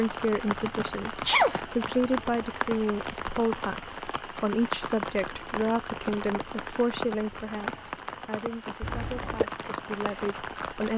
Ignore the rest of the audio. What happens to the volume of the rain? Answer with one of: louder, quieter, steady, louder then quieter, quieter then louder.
steady.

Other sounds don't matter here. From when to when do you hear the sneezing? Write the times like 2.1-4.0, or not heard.
0.6-1.6, 8.8-9.4.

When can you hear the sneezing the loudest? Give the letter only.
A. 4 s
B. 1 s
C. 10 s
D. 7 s
B.